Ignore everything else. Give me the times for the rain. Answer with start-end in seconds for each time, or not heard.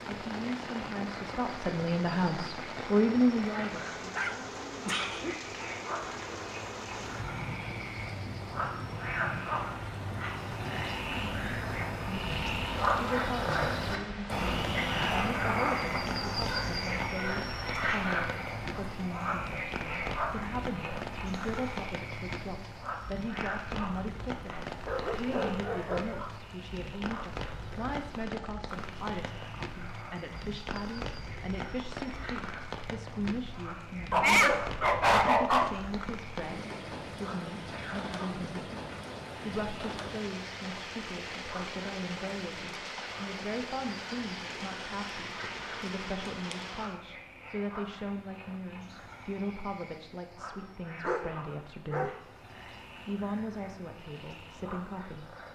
0.0-47.0.